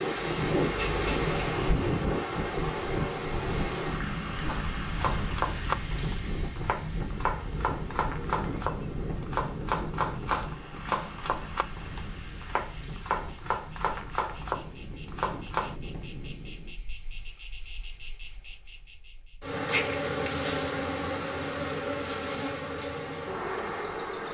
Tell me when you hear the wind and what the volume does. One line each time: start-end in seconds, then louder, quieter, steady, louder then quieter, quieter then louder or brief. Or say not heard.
0.0-16.9 quieter.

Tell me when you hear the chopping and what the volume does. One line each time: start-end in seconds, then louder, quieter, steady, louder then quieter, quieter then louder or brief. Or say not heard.
4.5-15.8 steady.